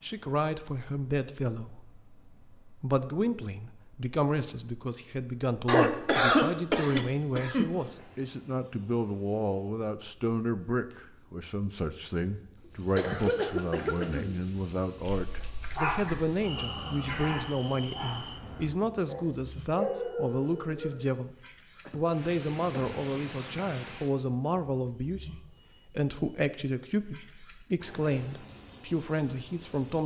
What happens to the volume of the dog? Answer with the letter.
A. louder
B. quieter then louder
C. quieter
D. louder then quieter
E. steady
B.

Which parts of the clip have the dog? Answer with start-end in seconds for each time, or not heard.
15.2-21.1.